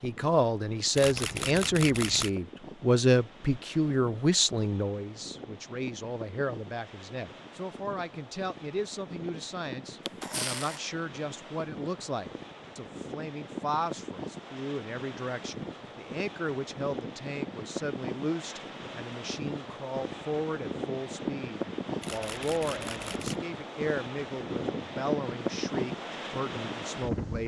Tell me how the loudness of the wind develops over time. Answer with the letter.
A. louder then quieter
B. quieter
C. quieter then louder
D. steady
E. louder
E.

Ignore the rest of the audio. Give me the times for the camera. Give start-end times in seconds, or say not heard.
0.9-2.4, 10.1-10.8, 22.0-23.4.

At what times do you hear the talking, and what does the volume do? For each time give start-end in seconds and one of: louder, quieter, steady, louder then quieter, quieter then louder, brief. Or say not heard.
0.0-27.4 quieter.